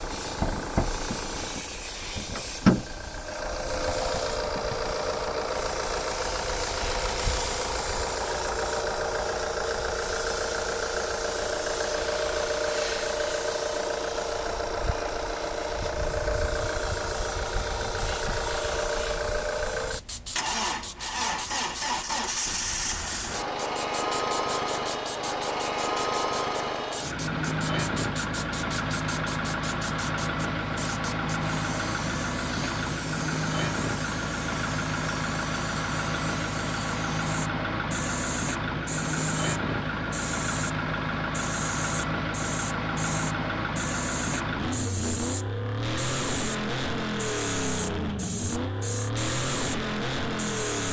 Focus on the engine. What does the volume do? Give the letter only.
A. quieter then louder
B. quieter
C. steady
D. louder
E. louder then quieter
C.